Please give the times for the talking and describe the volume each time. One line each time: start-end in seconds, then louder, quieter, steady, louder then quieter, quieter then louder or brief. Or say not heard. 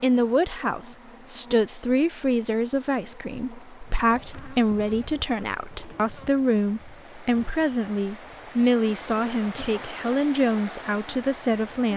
0.0-11.9 steady.